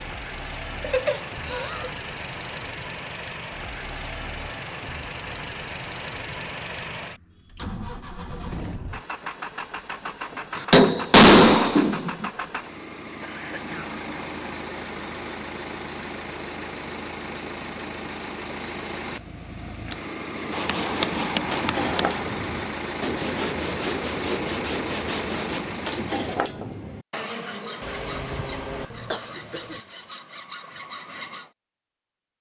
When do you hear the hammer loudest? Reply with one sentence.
The volume of the hammer peaks at 11 seconds.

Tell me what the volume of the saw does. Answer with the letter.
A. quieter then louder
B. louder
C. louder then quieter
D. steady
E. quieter
E.